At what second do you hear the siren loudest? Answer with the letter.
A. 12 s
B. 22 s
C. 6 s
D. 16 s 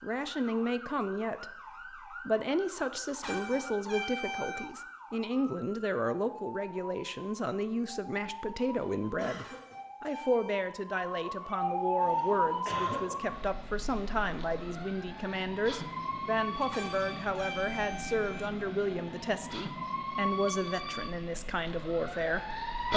A.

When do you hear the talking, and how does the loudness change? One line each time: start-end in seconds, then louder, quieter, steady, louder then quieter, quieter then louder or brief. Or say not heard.
0.0-22.9 steady.